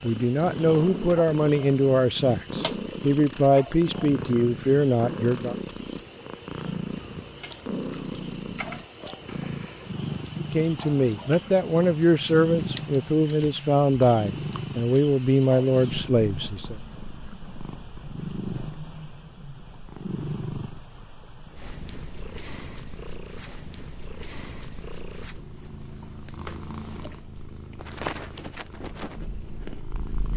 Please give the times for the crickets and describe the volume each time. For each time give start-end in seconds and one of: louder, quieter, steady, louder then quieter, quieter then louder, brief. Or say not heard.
0.0-30.3 steady.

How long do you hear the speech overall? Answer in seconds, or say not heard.
12 s.